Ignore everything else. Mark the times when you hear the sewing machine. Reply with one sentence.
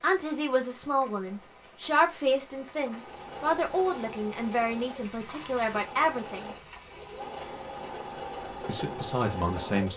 You can hear the sewing machine from 2.8 to 9.9 s.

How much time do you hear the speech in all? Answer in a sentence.
You can hear the speech for 8 seconds altogether.